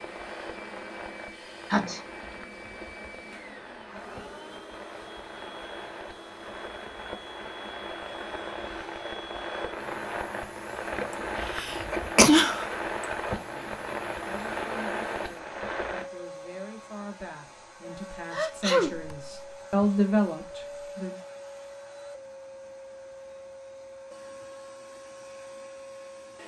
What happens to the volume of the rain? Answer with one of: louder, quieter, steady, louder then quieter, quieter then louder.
louder.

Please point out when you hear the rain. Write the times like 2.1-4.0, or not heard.
0.0-16.1.